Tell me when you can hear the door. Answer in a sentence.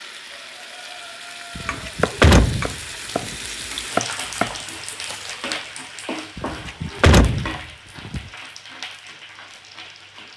You can hear the door from 1.6 to 3.4 s and from 6.3 to 8.2 s.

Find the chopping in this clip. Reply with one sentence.
You can hear the chopping from 1.9 to 5.3 s.